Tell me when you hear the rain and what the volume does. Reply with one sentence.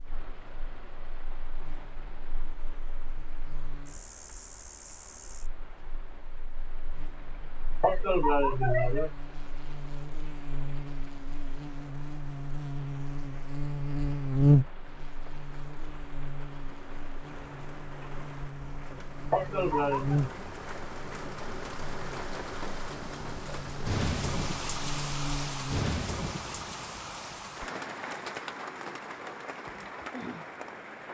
You can hear the rain from 0.0 to 31.0 s, getting louder.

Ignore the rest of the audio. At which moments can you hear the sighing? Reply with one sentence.
You can hear the sighing from 7.8 to 9.1 s and from 19.3 to 20.2 s.